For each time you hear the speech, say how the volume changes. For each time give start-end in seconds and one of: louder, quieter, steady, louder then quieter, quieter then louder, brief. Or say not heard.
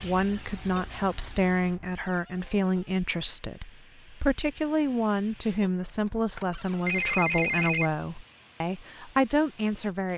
0.0-10.1 steady.